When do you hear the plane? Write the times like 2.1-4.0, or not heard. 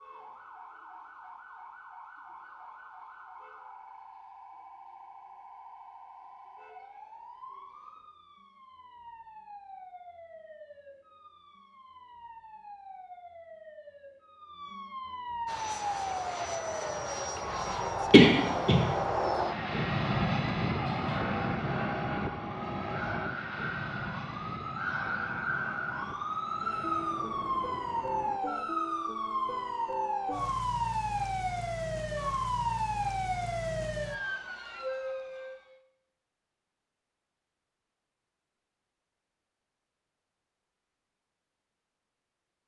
15.4-28.4.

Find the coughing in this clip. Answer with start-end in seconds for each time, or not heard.
18.1-18.8.